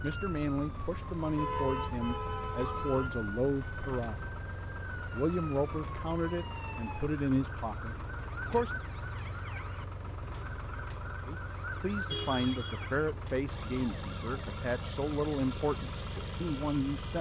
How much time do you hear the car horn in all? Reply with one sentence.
You can hear the car horn for 3 seconds altogether.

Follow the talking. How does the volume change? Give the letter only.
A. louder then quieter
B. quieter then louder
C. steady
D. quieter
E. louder
C.